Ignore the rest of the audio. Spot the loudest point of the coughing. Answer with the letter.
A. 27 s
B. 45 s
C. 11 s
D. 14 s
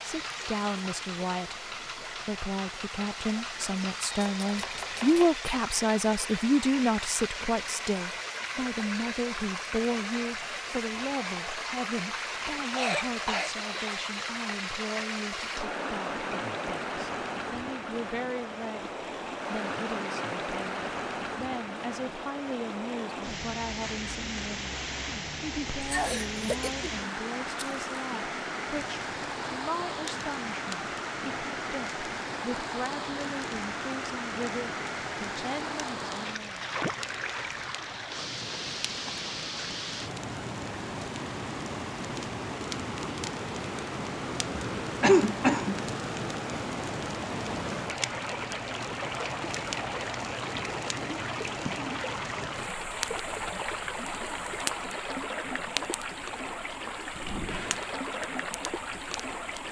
B.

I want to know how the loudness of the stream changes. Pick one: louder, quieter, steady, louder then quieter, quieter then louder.
steady.